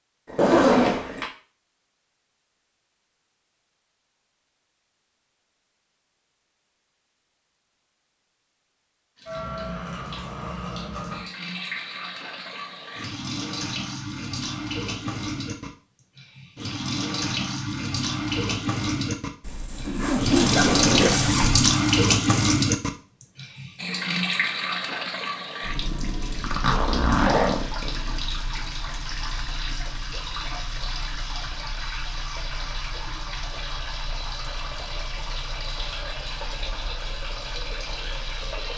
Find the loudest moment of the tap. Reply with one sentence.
The loudest moment of the tap is at 22 seconds.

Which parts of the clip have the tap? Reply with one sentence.
You can hear the tap from 9.2 to 38.7 s.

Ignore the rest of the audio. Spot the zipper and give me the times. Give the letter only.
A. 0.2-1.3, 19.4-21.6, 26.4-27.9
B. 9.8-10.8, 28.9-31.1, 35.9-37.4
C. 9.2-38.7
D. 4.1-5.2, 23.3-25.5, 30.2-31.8
A.